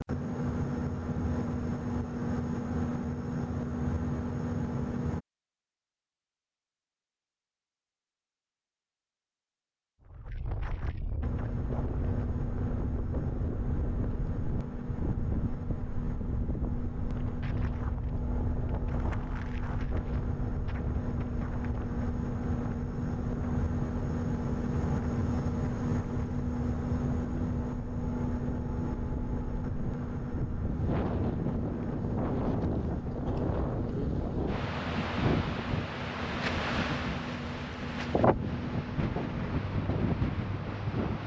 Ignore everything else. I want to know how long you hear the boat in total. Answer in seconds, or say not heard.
35 s.